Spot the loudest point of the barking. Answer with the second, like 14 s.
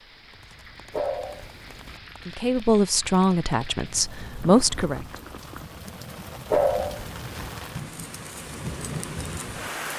7 s.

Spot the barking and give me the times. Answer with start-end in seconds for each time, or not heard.
0.9-2.0, 6.5-7.5.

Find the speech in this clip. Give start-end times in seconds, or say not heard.
2.2-5.0.